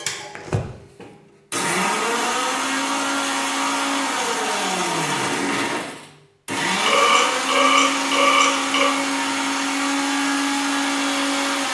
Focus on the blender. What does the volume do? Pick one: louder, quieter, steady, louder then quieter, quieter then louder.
steady.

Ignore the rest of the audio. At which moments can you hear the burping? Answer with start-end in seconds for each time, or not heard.
6.8-8.8.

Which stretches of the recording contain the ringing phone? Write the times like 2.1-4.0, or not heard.
not heard.